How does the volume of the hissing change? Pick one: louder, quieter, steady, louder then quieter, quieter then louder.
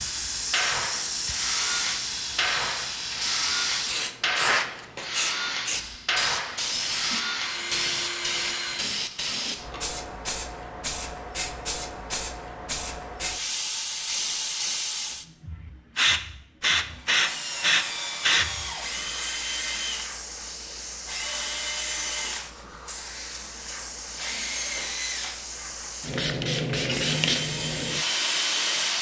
steady.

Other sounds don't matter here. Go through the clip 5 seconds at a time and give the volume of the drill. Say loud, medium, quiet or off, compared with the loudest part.
loud, loud, off, loud, loud, loud.